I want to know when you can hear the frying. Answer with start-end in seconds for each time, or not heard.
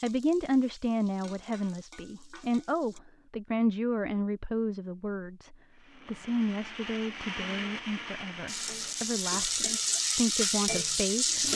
0.0-3.0, 8.4-11.5.